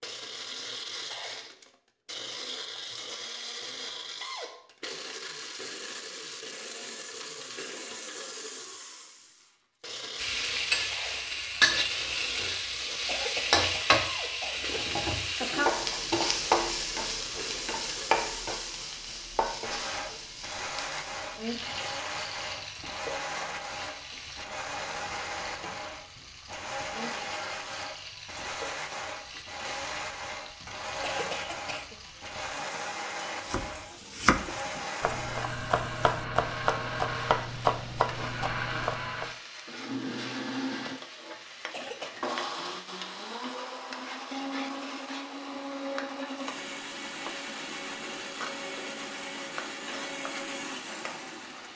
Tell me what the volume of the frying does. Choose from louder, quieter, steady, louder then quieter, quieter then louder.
quieter.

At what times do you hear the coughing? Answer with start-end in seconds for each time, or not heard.
13.1-14.8, 31.0-31.9, 41.7-42.1.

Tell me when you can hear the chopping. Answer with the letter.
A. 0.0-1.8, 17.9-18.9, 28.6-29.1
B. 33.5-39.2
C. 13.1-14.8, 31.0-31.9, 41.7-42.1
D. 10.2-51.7
B.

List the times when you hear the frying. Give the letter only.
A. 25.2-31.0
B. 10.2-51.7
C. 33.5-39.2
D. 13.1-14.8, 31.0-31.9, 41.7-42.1
B.